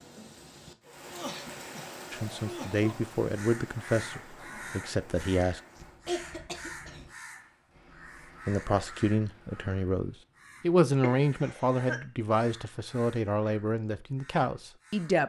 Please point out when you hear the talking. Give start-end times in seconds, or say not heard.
2.1-5.6, 8.4-15.2.